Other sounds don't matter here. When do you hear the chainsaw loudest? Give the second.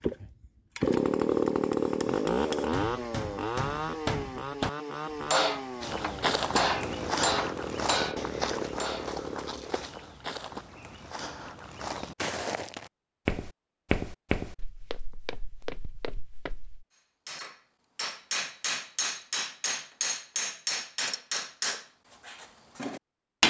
1 s.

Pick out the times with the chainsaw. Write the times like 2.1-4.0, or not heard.
0.0-9.8.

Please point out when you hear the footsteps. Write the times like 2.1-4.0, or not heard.
5.8-16.9.